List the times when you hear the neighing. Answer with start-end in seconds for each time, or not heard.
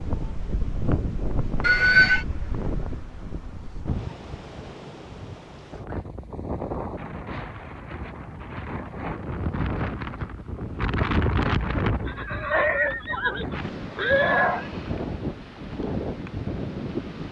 1.6-2.2, 12.1-14.7.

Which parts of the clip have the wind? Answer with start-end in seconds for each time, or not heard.
0.0-17.2.